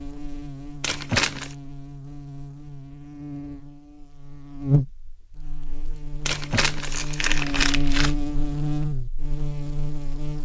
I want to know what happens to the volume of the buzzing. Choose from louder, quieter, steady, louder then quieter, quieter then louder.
louder.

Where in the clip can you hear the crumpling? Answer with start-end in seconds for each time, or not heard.
0.8-1.6, 6.2-8.2.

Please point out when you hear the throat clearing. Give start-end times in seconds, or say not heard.
not heard.